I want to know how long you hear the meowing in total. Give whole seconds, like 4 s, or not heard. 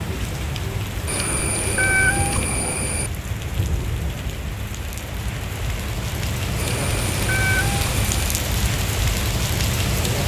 4 s.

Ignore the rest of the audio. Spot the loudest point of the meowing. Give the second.
2 s.